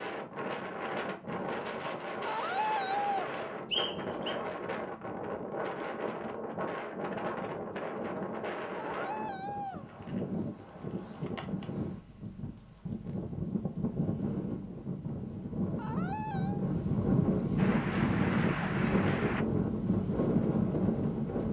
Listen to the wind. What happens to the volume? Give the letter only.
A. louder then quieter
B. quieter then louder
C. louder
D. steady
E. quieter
C.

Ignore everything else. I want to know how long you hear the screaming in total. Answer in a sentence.
You can hear the screaming for 3 seconds altogether.